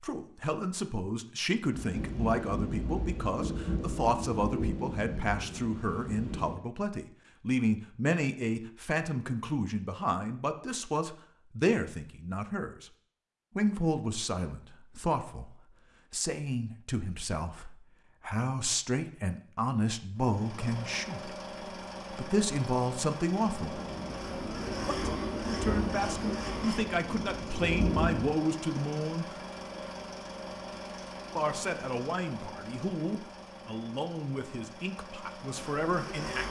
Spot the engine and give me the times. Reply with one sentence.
The engine can be heard from 20.1 to 36.4 s.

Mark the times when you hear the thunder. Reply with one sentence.
The thunder can be heard from 1.7 to 6.6 s and from 23.4 to 28.4 s.